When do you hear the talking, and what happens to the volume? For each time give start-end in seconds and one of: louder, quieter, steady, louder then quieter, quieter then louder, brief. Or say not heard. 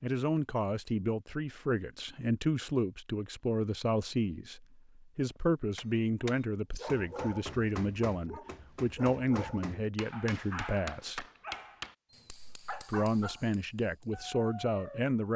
0.0-11.2 steady
12.8-15.3 brief.